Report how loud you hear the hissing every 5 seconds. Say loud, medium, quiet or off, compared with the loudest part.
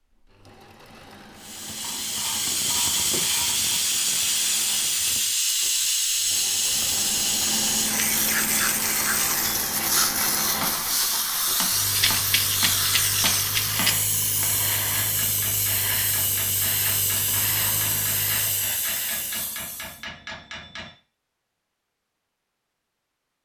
loud, loud, loud, medium, off.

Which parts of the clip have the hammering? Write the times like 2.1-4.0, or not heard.
10.6-20.9.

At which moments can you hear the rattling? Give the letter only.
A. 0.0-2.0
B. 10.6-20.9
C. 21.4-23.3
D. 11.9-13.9
D.